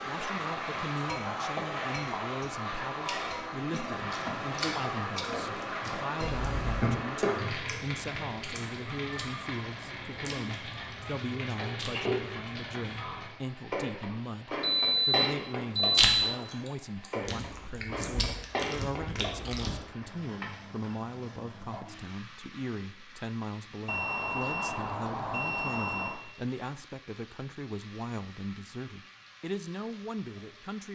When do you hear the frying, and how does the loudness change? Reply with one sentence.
The frying can be heard from 0.0 to 30.8 s, getting quieter.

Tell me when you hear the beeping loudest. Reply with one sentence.
The volume of the beeping peaks at 15 seconds.